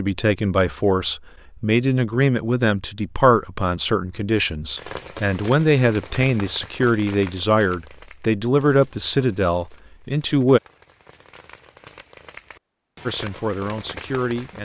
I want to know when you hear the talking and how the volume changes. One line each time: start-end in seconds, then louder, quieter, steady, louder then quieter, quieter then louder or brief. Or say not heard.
0.0-10.6 steady
13.1-14.5 brief.